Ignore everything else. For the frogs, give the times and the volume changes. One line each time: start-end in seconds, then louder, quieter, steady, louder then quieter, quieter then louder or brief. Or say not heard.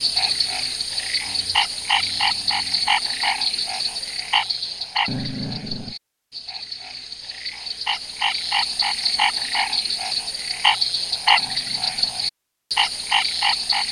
0.0-13.8 quieter then louder.